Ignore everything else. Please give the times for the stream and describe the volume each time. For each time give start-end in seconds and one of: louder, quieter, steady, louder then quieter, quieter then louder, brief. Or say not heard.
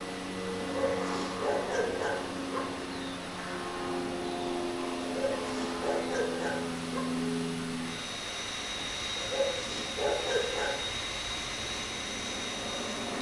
0.0-13.1 steady.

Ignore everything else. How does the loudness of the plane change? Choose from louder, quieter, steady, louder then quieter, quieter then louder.
steady.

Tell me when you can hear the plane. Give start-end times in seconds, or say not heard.
0.0-13.1.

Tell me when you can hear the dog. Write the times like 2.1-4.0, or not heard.
0.6-2.5, 5.0-7.0, 9.2-10.9.